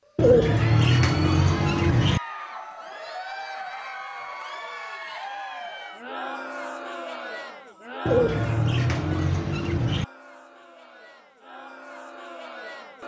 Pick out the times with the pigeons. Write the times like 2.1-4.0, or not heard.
0.1-2.2, 8.1-10.1.